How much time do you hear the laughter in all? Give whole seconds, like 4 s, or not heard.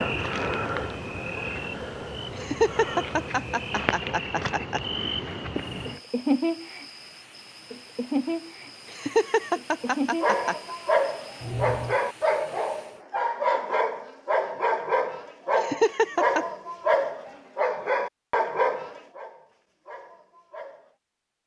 5 s.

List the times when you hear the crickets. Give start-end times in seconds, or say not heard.
0.0-12.0.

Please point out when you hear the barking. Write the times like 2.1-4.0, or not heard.
9.8-20.9.